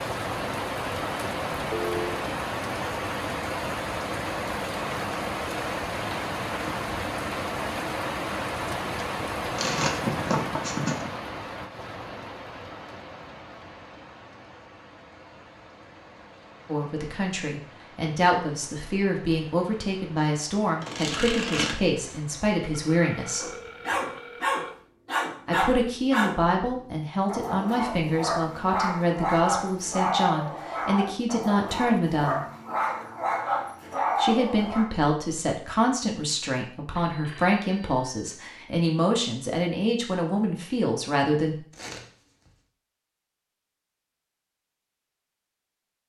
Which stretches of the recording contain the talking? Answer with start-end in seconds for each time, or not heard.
16.6-23.5, 25.4-32.5, 34.1-41.5.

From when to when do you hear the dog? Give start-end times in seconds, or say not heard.
23.4-34.9.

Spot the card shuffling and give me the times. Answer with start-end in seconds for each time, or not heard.
9.6-11.1, 20.8-22.2, 41.7-42.5.